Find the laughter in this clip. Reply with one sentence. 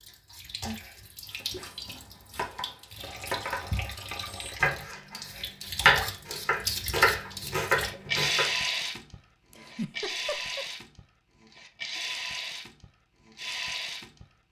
You can hear the laughter from 9.5 to 10.7 s.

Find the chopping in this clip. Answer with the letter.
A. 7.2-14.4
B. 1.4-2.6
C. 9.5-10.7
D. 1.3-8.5
D.